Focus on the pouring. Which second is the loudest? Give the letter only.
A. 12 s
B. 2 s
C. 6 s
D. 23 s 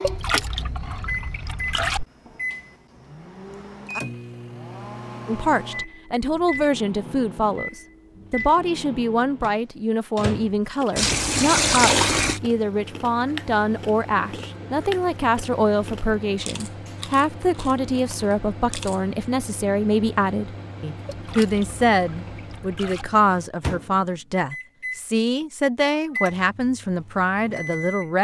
A.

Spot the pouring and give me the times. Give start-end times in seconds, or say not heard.
0.0-2.0, 10.9-12.4, 21.1-23.1.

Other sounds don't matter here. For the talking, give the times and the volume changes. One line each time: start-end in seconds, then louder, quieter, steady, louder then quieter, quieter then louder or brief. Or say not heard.
5.2-28.2 steady.